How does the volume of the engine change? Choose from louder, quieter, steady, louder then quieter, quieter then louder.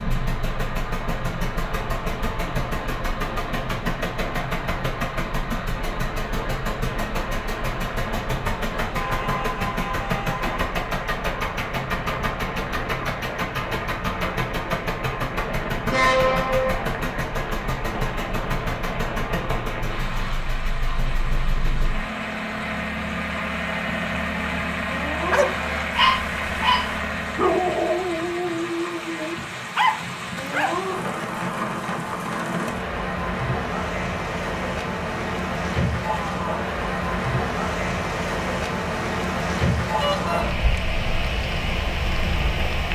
steady.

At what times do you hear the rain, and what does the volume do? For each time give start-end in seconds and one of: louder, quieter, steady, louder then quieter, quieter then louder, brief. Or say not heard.
0.0-42.9 louder.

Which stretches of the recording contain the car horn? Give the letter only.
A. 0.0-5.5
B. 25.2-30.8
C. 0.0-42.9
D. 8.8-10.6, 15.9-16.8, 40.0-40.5
D.